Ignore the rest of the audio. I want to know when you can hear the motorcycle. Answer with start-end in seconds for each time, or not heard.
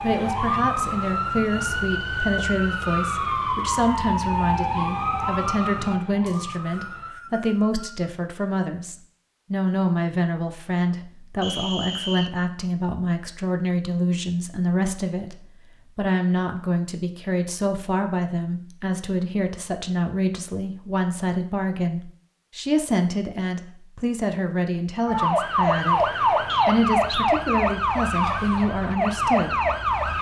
not heard.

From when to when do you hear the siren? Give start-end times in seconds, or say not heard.
0.0-7.2, 25.1-30.1.